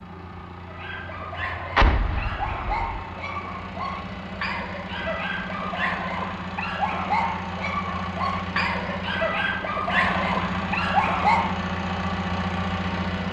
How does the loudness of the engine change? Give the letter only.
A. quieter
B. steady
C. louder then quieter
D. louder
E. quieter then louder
D.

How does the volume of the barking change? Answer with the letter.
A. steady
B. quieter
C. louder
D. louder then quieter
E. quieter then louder
C.